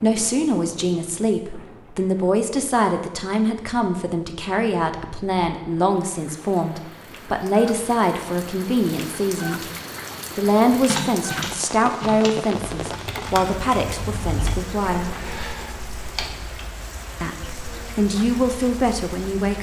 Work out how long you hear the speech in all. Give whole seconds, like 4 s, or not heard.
17 s.